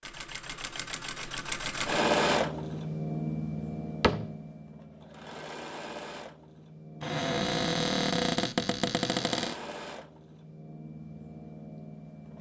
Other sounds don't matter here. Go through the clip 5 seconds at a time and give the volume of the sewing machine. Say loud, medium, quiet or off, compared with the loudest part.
loud, medium, quiet.